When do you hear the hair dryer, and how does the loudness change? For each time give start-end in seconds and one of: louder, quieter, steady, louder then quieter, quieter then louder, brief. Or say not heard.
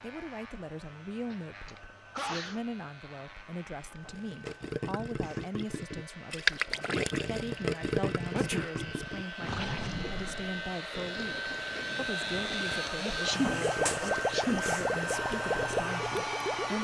0.0-16.8 louder.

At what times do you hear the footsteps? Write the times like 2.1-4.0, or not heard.
not heard.